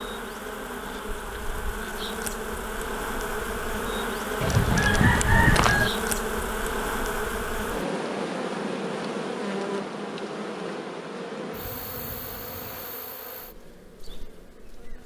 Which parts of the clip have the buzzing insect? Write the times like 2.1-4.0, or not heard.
0.0-15.0.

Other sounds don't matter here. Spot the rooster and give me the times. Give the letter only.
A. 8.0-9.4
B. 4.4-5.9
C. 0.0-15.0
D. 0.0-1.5
B.